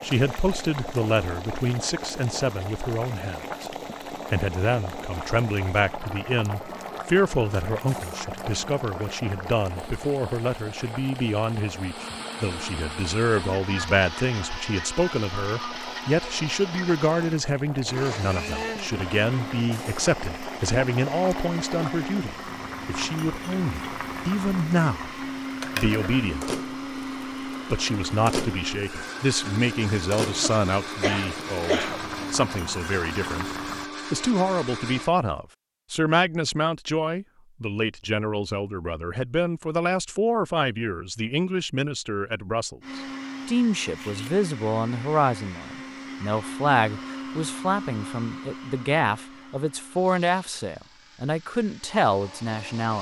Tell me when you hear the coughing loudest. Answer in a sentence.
The loudest moment of the coughing is at 32 seconds.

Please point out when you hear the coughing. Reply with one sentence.
You can hear the coughing from 30.4 to 32.0 s.